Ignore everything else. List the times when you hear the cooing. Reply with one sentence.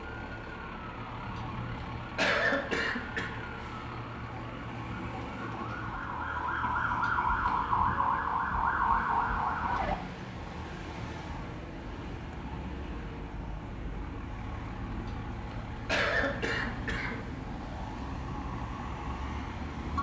The cooing can't be heard in this clip.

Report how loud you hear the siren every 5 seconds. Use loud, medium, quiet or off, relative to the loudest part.
quiet, loud, off, off.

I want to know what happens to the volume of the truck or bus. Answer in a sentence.
The loudness of the truck or bus stays about the same.